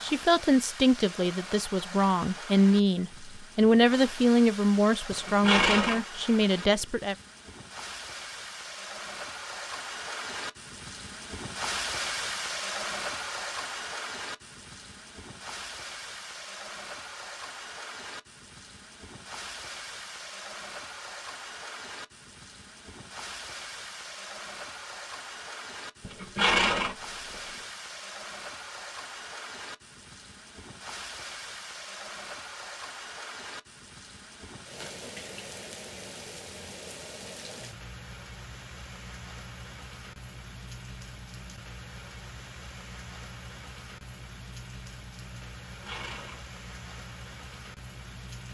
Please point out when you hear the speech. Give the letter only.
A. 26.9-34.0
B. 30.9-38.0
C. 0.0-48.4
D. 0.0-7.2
D.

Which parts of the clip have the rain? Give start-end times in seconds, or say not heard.
0.0-48.4.